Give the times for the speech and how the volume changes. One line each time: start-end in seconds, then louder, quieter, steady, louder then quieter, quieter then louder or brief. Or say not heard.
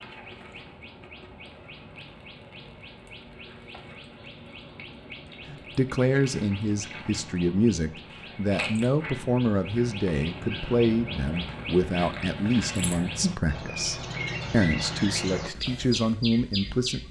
5.8-17.0 steady.